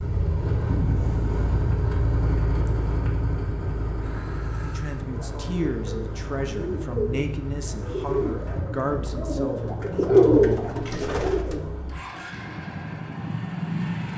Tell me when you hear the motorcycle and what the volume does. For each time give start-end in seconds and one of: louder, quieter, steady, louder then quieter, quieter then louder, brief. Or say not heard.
0.0-14.1 quieter.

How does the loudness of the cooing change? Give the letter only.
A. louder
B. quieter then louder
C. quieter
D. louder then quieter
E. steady
A.